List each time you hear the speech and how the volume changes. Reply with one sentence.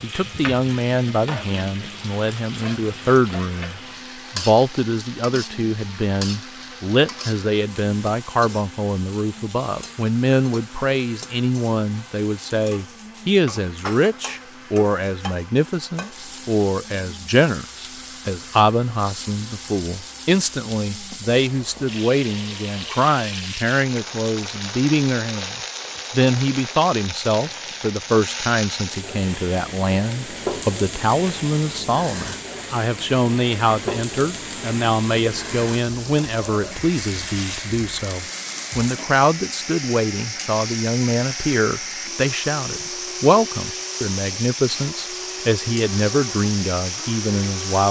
You can hear the speech from 0.0 to 47.8 s, at a steady volume.